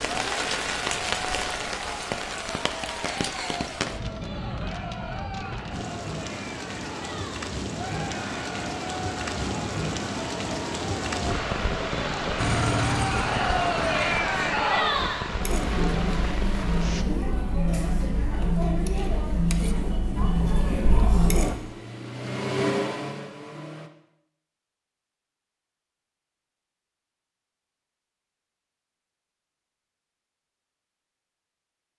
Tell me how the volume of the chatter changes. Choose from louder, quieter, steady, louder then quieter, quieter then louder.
louder.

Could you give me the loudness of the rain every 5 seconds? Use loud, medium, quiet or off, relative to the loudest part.
loud, loud, loud, loud, off, off, off.